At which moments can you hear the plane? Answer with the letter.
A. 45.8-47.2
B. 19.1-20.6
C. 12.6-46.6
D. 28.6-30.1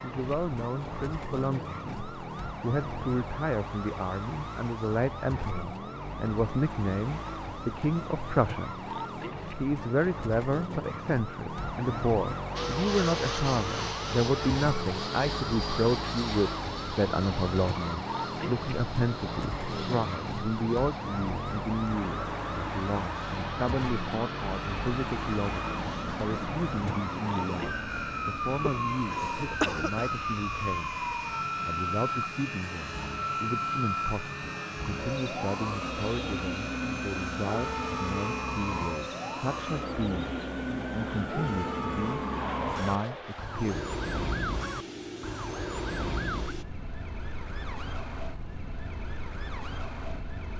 C.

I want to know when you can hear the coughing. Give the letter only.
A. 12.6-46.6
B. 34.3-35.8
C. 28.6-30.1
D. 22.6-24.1
C.